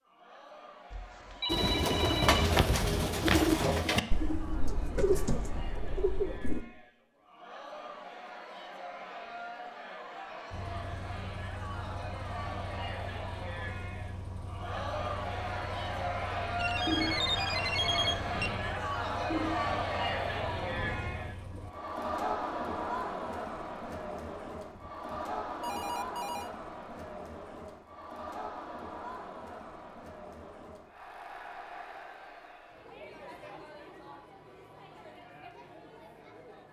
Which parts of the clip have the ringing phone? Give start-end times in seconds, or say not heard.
0.9-2.6, 16.6-18.5, 24.7-26.5.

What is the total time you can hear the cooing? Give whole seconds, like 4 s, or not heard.
10 s.